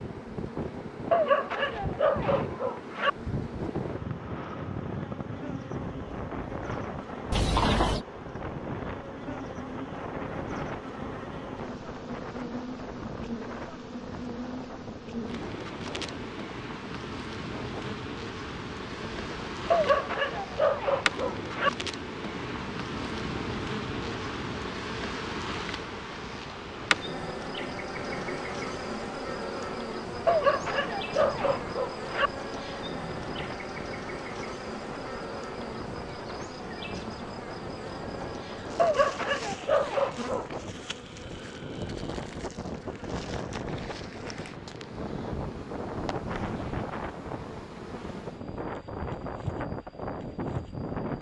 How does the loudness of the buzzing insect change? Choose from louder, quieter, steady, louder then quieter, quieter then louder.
louder then quieter.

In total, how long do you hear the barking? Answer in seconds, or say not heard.
8 s.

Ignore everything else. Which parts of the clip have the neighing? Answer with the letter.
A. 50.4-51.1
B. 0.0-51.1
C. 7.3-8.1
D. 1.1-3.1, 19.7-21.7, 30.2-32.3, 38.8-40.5
C.